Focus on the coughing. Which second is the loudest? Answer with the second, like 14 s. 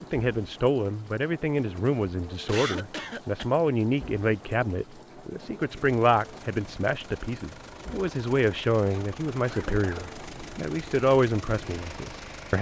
3 s.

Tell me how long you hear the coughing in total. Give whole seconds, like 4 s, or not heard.
2 s.